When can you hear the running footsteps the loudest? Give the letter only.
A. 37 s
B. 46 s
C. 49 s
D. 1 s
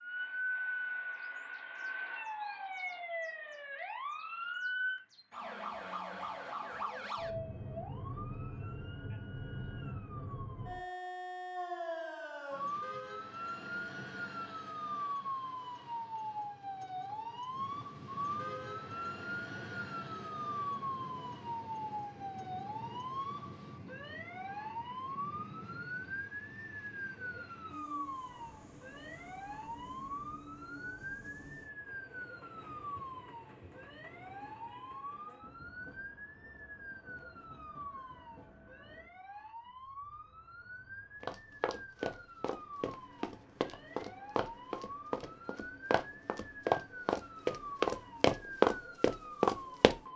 C.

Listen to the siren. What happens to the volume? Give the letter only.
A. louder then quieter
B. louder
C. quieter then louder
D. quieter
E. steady
D.